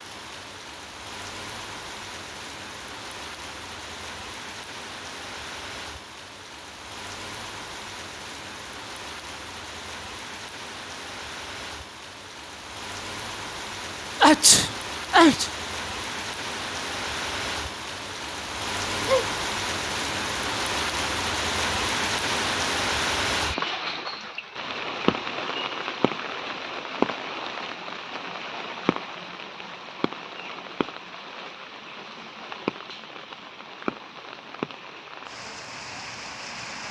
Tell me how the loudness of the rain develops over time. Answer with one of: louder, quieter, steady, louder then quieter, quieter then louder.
louder then quieter.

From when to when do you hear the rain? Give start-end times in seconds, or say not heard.
0.0-36.8.